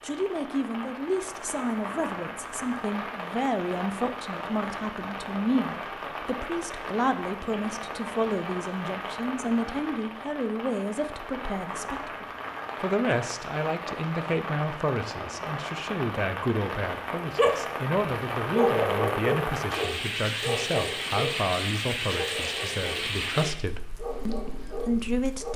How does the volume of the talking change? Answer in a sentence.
The volume of the talking stays about the same.